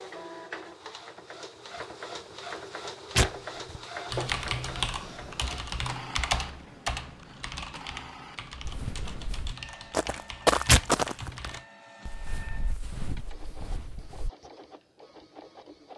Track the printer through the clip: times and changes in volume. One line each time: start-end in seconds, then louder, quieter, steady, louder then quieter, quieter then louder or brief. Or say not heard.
0.0-15.9 quieter.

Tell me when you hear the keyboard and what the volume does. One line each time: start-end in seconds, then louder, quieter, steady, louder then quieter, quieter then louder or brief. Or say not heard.
4.1-11.7 quieter.